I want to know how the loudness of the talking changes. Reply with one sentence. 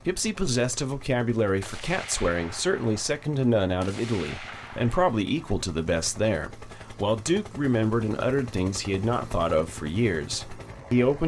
The loudness of the talking stays about the same.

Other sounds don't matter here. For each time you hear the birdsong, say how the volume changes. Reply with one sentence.
You can't hear the birdsong here.